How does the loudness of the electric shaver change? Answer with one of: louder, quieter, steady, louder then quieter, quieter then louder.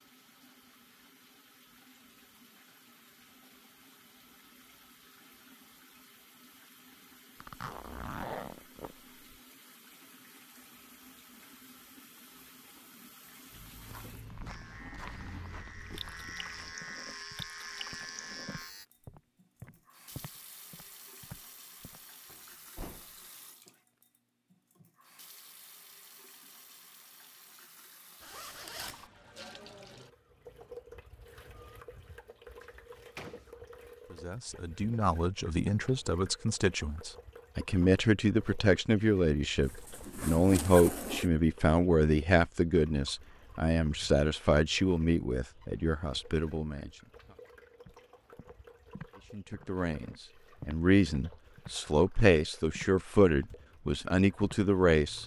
louder.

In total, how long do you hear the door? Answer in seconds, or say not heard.
2 s.